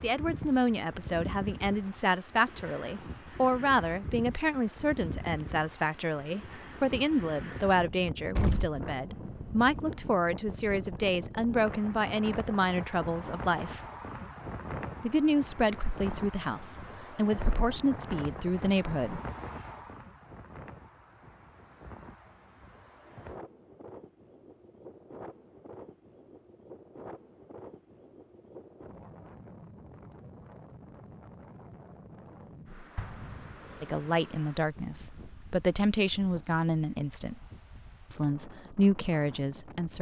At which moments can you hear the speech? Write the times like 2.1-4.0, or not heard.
0.0-13.8, 15.0-19.2, 33.8-37.4, 38.1-39.9.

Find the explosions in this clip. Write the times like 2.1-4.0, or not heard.
8.3-8.8, 33.0-34.0.